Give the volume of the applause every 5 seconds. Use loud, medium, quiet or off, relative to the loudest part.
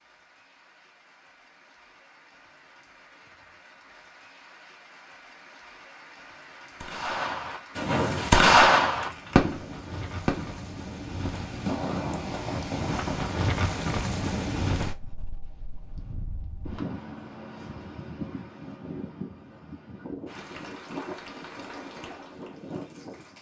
medium, loud, off, off, loud.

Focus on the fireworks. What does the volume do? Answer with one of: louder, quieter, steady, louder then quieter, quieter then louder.
louder then quieter.